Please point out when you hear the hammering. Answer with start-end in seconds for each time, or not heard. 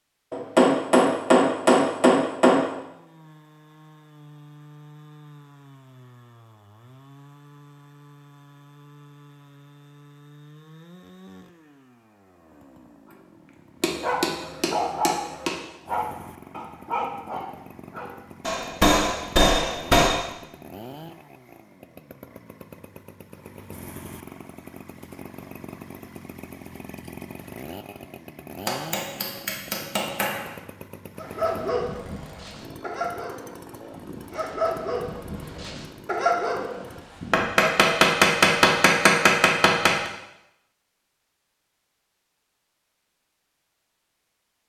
0.3-2.7, 13.8-15.6, 18.4-20.2, 28.6-30.4, 37.3-40.1.